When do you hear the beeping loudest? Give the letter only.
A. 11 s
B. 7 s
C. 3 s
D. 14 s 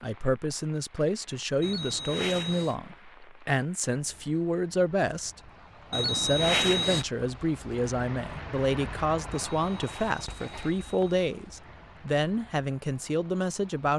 B.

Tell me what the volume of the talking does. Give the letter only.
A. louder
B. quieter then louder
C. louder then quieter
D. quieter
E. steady
E.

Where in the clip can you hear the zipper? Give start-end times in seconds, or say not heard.
not heard.